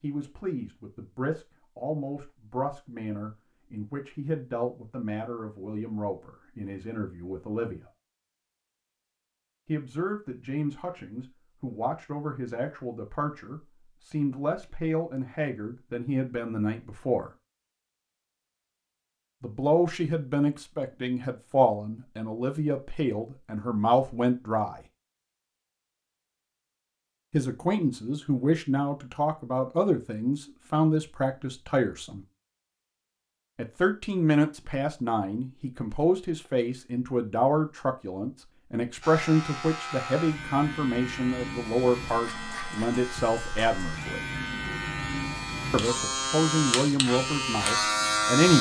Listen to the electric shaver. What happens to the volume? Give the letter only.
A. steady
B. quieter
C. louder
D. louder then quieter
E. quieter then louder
C.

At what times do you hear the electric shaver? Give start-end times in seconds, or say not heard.
39.0-48.5.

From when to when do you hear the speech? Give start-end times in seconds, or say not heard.
0.0-7.8, 9.7-17.3, 19.4-24.8, 27.3-32.2, 33.5-44.2, 45.7-48.5.